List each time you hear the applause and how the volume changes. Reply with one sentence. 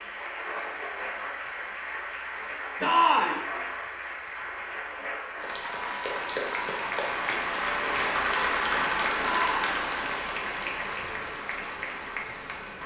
You can hear the applause from 0.0 to 12.8 s, getting louder then quieter.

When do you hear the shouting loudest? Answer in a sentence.
The volume of the shouting peaks at 3 seconds.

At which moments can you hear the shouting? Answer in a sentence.
You can hear the shouting from 2.8 to 3.4 s and from 9.2 to 9.8 s.